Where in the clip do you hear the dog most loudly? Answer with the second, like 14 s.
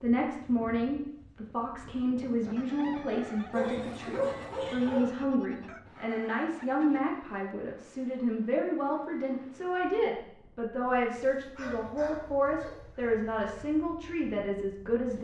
4 s.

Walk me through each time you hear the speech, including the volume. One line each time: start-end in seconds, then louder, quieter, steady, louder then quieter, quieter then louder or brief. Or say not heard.
0.0-15.1 steady.